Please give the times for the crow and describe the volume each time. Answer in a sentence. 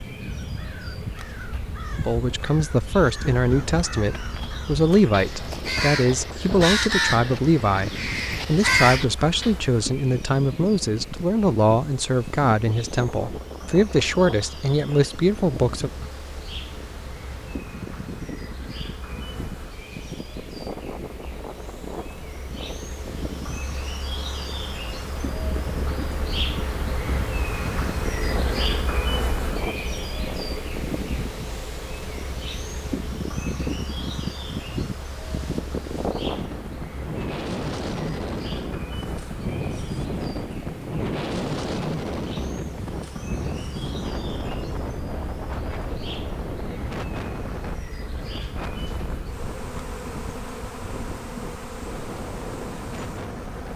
The crow can be heard from 0.1 to 9.6 s, getting louder.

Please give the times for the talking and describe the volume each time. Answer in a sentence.
You can hear the talking from 2.0 to 15.9 s, at a steady volume.